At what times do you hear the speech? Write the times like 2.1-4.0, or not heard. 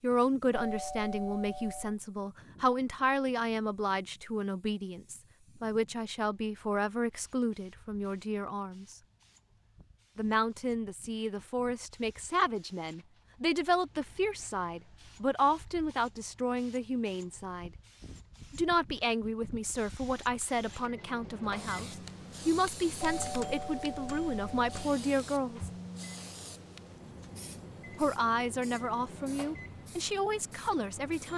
0.0-8.9, 10.2-17.7, 18.5-25.7, 27.9-31.3.